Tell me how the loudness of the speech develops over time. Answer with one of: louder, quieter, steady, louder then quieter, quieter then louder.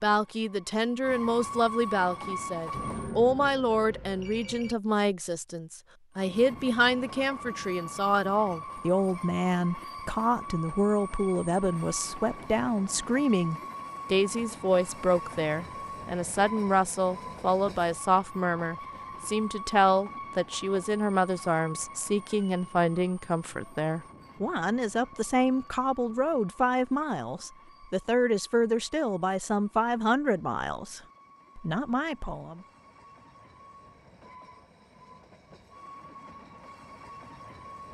steady.